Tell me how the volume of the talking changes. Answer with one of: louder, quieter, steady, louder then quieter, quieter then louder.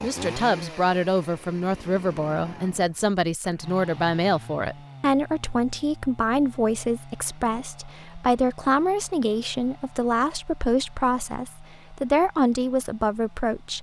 steady.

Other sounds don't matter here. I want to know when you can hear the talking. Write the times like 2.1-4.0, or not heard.
0.0-13.7.